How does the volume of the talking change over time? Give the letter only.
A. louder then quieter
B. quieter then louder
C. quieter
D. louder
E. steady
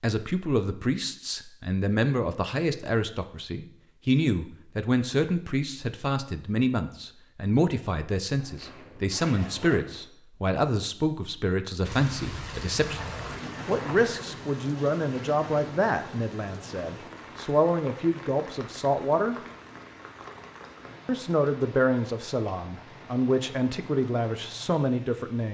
E.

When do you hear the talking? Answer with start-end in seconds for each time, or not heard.
0.0-13.0, 13.7-19.4, 21.1-25.4.